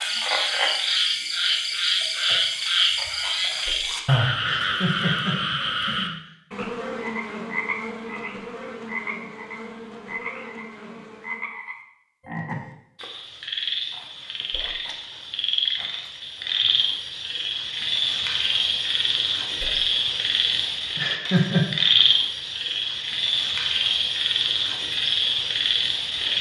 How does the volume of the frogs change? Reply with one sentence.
The volume of the frogs goes down, then up.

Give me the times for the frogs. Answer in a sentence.
You can hear the frogs from 0.0 to 26.3 s.